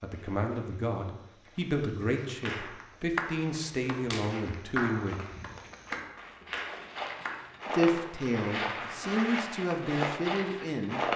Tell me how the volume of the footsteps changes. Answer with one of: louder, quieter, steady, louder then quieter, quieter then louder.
louder.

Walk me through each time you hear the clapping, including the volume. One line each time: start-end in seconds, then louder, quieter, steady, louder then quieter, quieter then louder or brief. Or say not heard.
2.5-9.1 quieter.